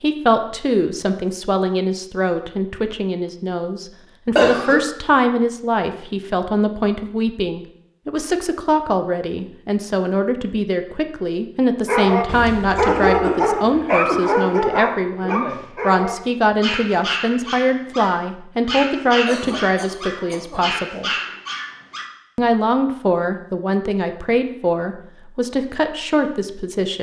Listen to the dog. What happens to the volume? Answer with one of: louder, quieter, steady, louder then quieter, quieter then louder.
quieter.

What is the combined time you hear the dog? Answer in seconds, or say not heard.
10 s.